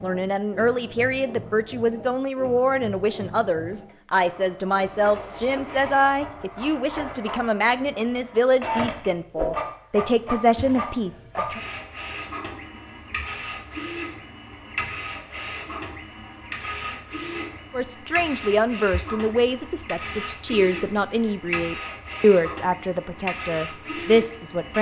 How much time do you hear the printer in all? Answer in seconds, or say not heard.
25 s.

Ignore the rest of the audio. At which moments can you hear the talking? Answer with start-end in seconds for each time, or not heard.
0.0-11.6, 17.7-24.7.